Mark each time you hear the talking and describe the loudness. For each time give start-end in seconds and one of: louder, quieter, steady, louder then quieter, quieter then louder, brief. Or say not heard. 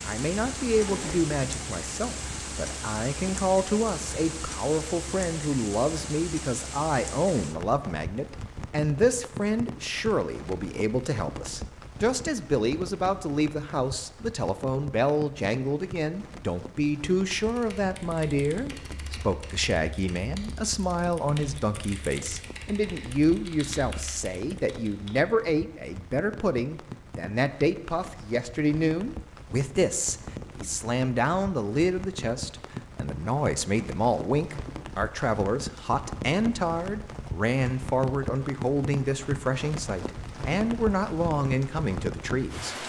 0.1-42.8 steady.